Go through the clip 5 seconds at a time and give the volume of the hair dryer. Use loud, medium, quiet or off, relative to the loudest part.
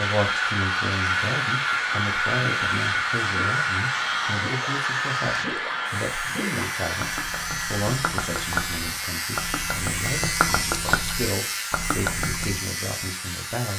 loud, medium, quiet.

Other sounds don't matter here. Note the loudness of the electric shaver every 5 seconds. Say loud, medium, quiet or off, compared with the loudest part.
medium, loud, loud.